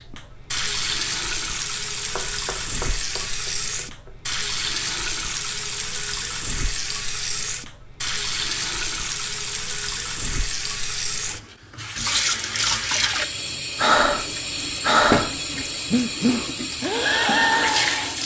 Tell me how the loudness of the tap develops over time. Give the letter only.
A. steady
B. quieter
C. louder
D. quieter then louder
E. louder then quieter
A.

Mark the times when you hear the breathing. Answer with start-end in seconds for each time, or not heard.
13.8-18.1.